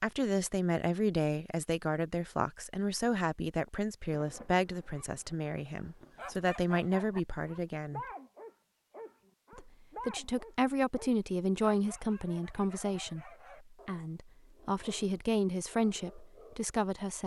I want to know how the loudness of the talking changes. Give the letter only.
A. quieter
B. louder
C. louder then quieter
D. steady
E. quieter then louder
D.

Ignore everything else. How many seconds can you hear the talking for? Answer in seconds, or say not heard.
16 s.